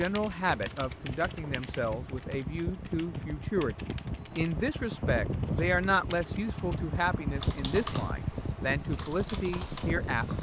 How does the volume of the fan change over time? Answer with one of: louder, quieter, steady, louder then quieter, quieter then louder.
louder.